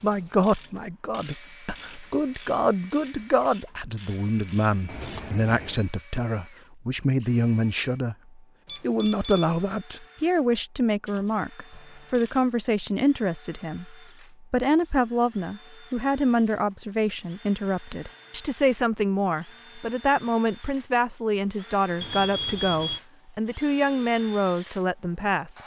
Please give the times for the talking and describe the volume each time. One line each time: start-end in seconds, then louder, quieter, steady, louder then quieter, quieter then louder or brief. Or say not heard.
0.0-25.6 steady.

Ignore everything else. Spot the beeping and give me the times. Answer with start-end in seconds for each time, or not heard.
4.8-5.8, 8.7-9.6, 22.0-23.0.